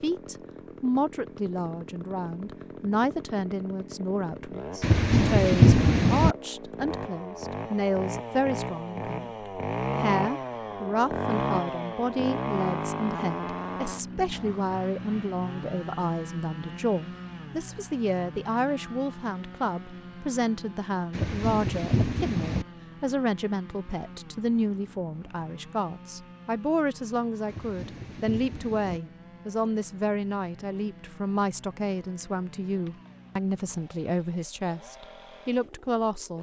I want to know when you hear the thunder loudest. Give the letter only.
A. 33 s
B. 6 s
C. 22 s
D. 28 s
B.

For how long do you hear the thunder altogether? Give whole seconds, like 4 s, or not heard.
5 s.